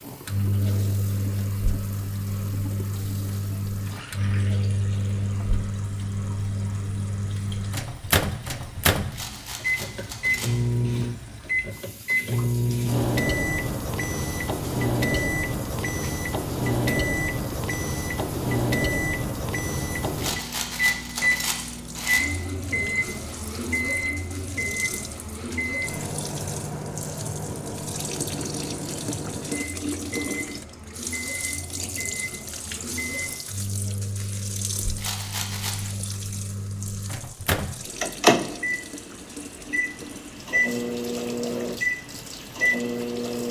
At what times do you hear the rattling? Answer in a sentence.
The rattling can be heard from 9.1 to 10.9 s, from 20.1 to 22.4 s and from 35.0 to 36.0 s.